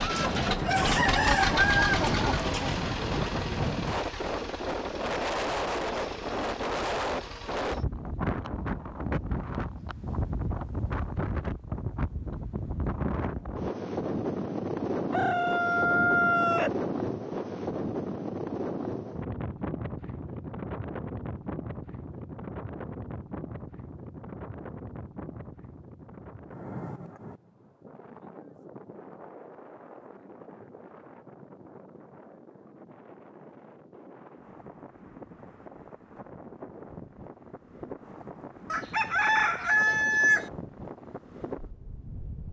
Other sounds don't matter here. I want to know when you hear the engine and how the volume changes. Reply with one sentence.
The engine can be heard from 0.0 to 7.8 s, getting quieter.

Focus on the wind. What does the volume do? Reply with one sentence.
The volume of the wind goes down.